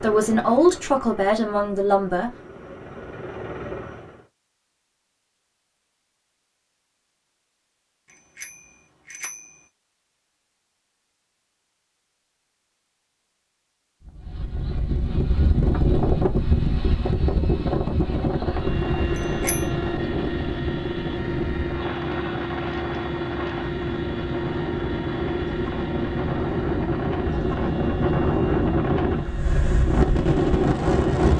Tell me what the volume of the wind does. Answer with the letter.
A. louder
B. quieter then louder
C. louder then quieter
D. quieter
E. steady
B.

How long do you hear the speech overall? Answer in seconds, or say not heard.
2 s.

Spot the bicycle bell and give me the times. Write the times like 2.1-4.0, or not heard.
8.1-9.6, 19.1-19.6.